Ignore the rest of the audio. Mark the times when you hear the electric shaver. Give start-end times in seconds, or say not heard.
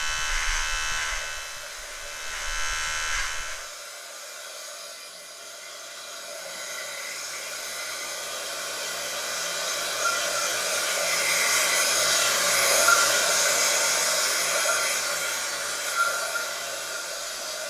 0.0-3.7.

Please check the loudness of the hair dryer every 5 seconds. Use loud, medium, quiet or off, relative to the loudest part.
quiet, medium, loud, medium.